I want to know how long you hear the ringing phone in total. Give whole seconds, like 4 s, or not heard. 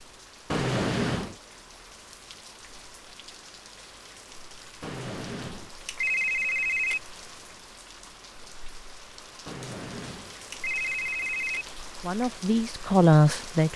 5 s.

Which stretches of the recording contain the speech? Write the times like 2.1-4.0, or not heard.
12.0-13.7.